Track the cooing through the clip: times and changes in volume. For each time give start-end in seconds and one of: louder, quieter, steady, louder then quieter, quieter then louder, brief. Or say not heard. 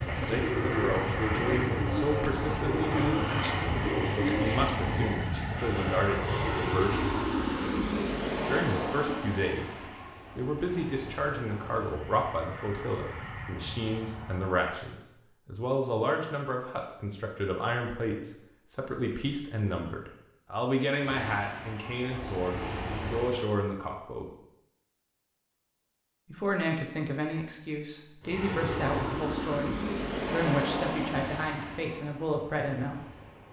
0.0-5.3 steady.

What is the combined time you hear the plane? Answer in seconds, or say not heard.
22 s.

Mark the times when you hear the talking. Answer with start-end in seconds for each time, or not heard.
0.1-7.0, 8.4-24.3, 26.2-33.0.